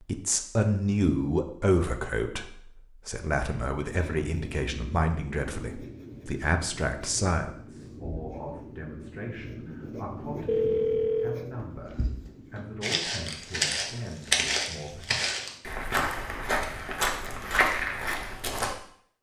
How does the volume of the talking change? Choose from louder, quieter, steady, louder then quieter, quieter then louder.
quieter.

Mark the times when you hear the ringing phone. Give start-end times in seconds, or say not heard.
10.4-11.4.